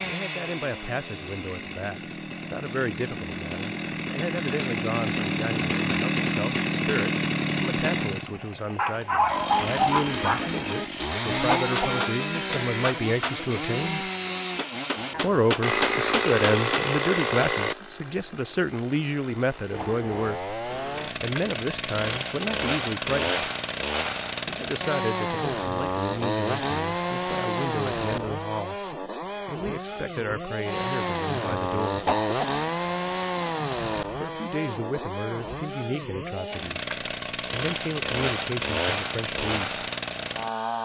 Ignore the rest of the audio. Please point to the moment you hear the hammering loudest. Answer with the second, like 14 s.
16 s.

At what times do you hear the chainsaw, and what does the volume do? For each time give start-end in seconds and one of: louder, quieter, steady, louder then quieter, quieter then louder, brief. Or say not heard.
0.0-40.8 steady.